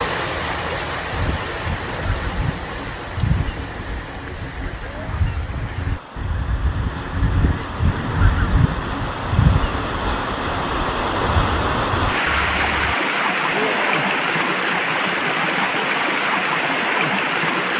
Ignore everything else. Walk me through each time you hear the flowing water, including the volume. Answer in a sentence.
You can hear the flowing water from 0.0 to 17.7 s, getting quieter then louder.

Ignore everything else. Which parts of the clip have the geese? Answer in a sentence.
The geese can be heard from 1.1 to 12.9 s.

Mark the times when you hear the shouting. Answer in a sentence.
The shouting can be heard from 4.8 to 5.2 s and from 13.5 to 14.2 s.